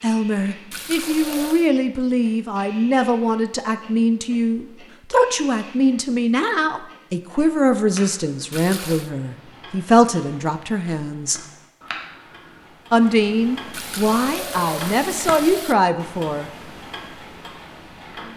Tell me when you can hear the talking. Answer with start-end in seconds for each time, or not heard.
0.0-11.4, 12.9-16.5.